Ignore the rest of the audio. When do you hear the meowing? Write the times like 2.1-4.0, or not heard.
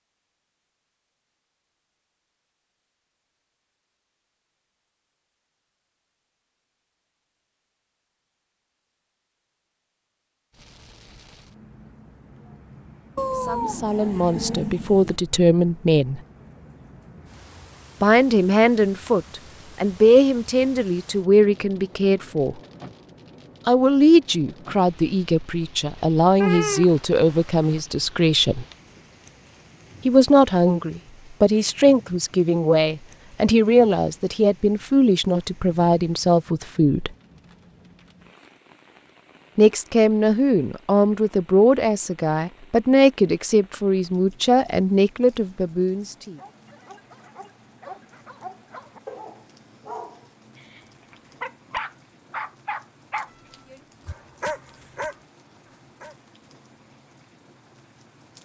13.2-15.2, 26.4-27.8, 53.2-54.1.